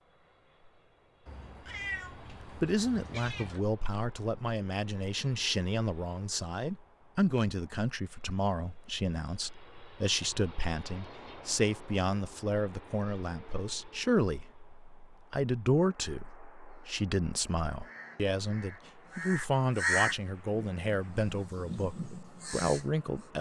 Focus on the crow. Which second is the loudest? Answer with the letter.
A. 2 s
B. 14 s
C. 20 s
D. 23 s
C.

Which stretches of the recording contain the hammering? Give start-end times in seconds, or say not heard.
not heard.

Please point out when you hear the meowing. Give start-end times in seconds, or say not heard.
1.2-3.6.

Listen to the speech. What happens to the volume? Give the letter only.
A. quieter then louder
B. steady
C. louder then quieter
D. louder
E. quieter
B.